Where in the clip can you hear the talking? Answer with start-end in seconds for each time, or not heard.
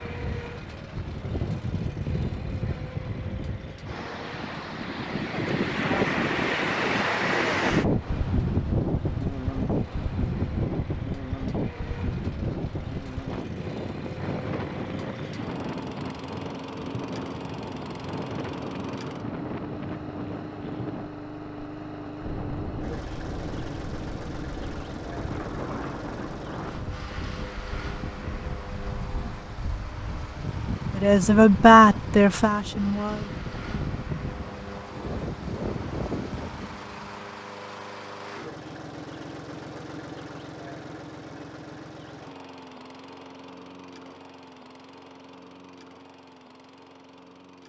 30.9-33.4.